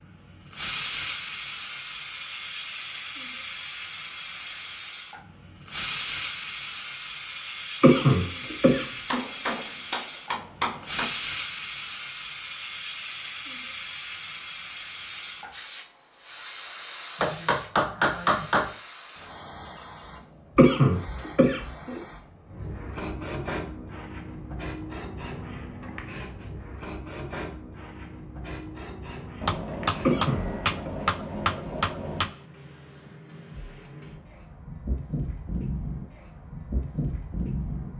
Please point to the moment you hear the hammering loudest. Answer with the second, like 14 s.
18 s.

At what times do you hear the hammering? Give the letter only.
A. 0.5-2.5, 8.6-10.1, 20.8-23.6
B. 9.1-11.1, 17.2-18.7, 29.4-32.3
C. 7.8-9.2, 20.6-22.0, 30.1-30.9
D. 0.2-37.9
B.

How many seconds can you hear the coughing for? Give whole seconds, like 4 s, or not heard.
4 s.